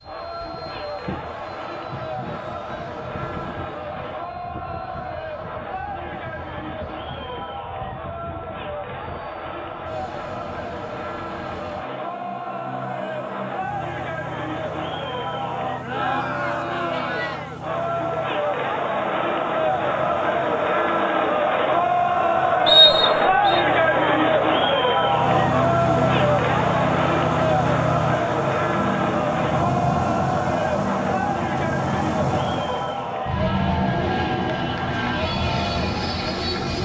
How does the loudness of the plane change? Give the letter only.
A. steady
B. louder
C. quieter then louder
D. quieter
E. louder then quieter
B.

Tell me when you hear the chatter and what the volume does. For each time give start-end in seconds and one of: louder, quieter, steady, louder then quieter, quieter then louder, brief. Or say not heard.
0.0-36.8 louder then quieter.